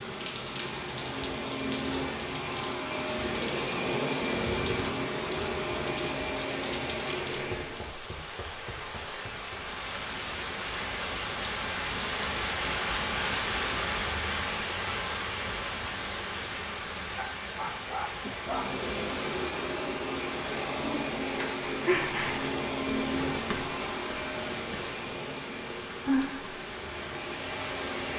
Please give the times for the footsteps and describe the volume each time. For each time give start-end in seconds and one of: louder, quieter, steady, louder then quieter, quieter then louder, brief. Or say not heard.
not heard.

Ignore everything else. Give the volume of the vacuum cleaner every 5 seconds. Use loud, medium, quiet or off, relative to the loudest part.
loud, loud, off, loud, loud, medium.